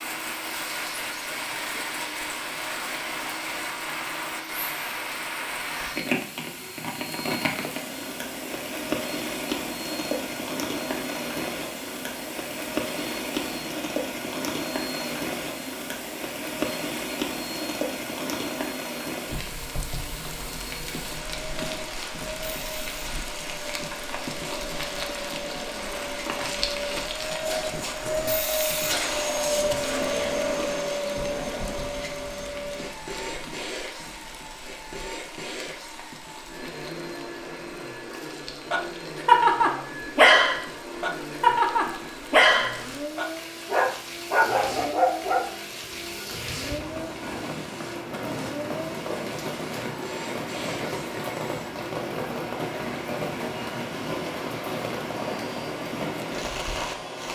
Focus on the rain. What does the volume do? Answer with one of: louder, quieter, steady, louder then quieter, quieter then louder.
quieter then louder.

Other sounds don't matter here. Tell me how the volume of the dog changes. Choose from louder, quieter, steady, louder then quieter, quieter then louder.
quieter.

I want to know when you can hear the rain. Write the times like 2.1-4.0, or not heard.
0.0-57.3.